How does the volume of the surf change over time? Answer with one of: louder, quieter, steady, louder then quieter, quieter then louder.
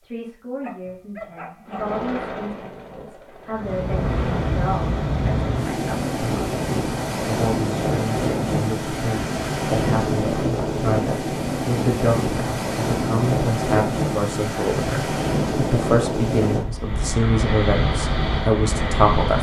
steady.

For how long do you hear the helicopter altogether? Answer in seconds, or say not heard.
3 s.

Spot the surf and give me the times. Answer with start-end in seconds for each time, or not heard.
3.5-19.3.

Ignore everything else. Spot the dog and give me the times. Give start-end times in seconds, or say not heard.
0.6-1.9.